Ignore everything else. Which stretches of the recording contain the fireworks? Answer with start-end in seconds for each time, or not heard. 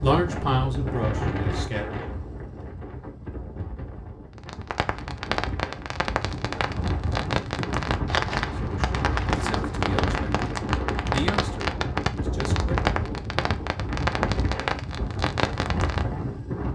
4.3-16.1.